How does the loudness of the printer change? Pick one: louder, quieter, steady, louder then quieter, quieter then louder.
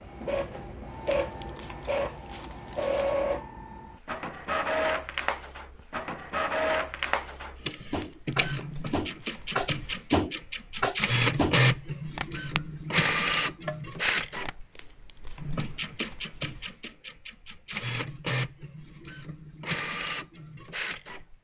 louder then quieter.